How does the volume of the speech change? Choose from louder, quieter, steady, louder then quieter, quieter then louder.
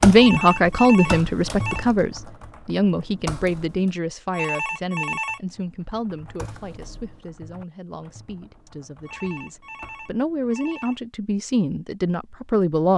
quieter then louder.